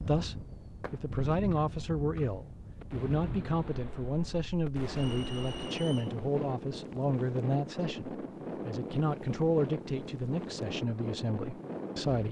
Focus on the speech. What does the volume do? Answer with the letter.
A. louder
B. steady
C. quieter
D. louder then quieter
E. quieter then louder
B.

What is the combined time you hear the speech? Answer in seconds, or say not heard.
12 s.